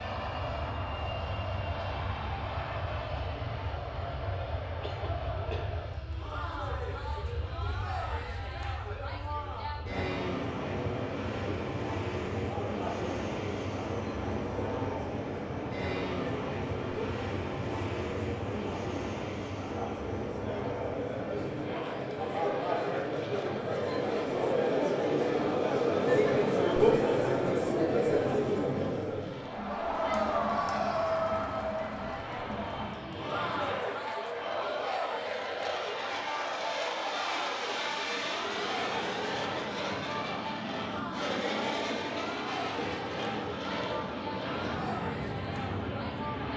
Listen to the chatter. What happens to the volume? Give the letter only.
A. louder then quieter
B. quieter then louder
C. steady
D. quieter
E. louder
A.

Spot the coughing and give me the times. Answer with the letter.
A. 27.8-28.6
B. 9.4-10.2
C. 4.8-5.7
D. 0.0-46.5
C.